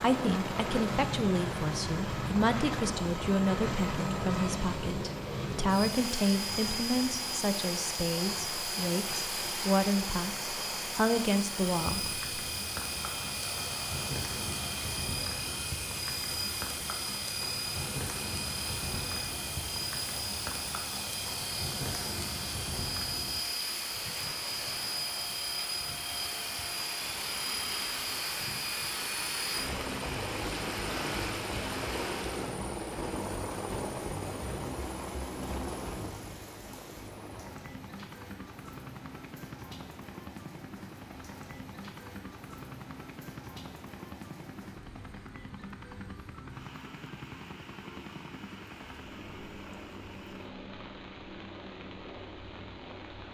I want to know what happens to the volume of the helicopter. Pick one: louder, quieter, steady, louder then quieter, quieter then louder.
quieter.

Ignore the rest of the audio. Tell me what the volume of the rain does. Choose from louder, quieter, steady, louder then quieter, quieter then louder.
quieter.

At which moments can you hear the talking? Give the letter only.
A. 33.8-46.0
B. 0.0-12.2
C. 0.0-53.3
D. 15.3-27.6
B.